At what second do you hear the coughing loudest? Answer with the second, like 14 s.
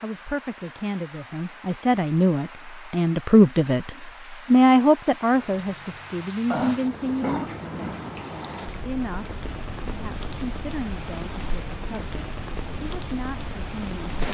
7 s.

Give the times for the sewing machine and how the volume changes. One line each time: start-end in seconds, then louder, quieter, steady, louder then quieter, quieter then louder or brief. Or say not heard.
not heard.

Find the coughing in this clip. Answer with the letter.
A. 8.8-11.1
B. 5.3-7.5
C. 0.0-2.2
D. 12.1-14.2
B.